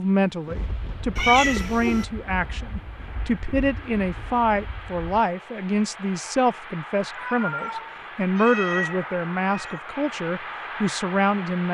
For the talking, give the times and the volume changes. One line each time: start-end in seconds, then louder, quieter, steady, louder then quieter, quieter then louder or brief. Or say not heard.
0.0-11.6 steady.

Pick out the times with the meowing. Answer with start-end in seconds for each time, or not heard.
1.1-2.0, 7.2-9.8.